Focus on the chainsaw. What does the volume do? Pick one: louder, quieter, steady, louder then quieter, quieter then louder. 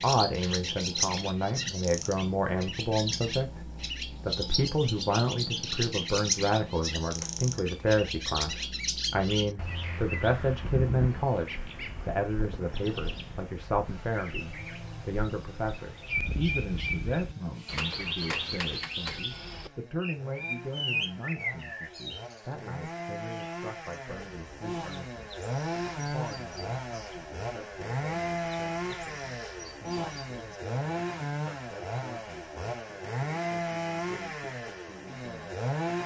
louder.